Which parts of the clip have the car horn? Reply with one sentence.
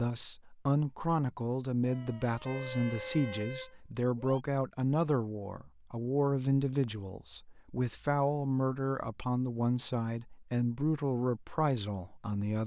The car horn can be heard from 2.4 to 4.4 s.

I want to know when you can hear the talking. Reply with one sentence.
The talking can be heard from 0.0 to 12.6 s.